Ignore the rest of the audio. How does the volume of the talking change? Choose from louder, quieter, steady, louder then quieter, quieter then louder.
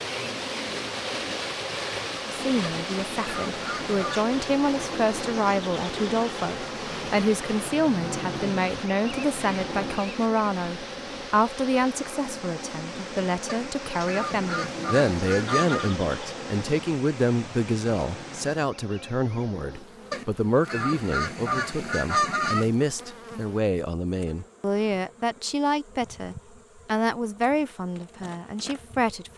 steady.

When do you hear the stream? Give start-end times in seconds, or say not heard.
0.0-18.6.